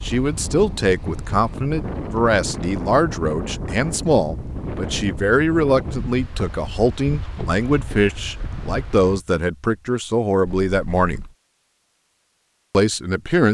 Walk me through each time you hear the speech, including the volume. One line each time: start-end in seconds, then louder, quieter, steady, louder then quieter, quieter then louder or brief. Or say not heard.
0.0-11.2 steady
12.7-13.4 brief.